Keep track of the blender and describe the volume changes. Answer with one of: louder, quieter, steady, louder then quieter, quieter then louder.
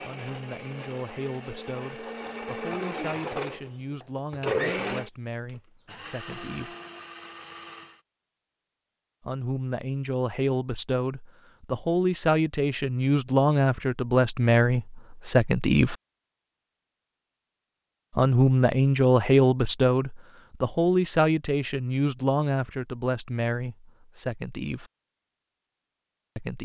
louder then quieter.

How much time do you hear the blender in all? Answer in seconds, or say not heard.
8 s.